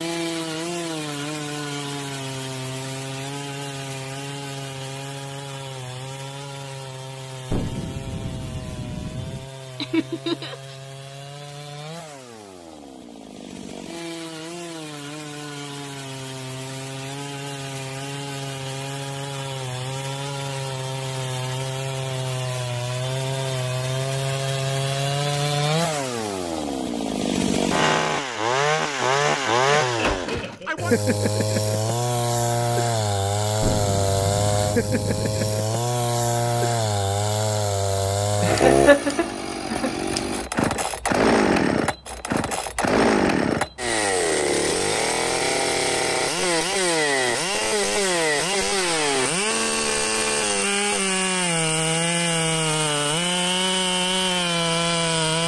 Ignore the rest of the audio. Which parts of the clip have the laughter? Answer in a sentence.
The laughter can be heard from 9.8 to 10.8 s, from 29.6 to 30.9 s and from 38.4 to 40.0 s.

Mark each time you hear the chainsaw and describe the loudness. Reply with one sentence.
The chainsaw can be heard from 0.0 to 55.4 s, getting louder.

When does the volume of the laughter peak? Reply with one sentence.
The loudest moment of the laughter is at 39 seconds.